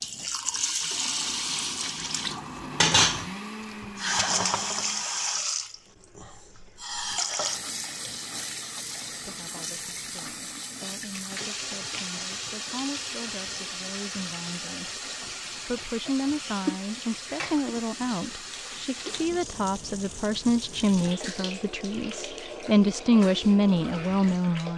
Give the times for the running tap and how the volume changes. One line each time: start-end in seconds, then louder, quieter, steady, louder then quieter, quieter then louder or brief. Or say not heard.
0.0-24.7 quieter.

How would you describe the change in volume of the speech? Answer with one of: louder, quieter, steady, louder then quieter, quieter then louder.
louder.